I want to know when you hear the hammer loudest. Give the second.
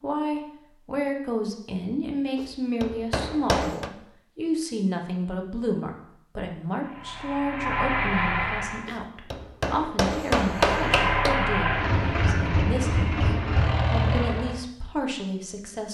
10 s.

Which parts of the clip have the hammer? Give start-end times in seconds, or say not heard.
2.4-3.9, 8.8-11.3.